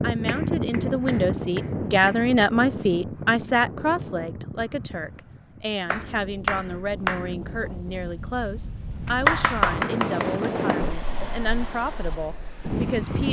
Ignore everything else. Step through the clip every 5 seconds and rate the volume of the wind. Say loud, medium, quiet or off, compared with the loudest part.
loud, medium, loud.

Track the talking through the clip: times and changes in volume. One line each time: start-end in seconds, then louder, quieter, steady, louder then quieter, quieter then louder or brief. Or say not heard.
0.0-13.2 quieter.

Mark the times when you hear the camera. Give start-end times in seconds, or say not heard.
not heard.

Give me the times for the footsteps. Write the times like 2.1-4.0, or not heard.
not heard.